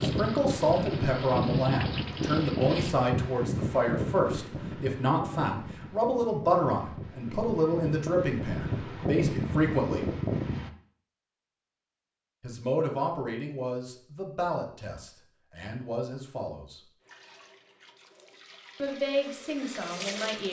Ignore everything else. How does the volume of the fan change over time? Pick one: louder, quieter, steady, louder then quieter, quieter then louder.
quieter then louder.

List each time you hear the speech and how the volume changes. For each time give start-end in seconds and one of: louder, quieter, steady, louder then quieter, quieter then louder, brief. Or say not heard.
0.0-10.1 steady
12.4-16.8 quieter then louder
18.8-20.4 brief.